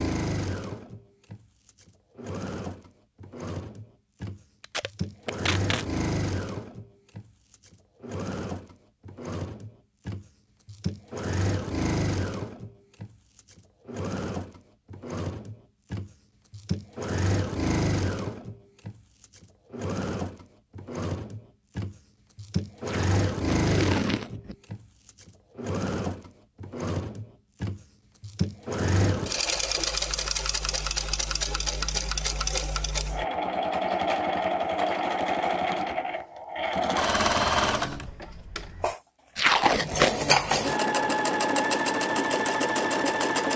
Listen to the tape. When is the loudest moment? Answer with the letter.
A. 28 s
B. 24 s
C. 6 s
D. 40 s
D.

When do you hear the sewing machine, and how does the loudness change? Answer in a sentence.
The sewing machine can be heard from 0.0 to 43.5 s, getting louder.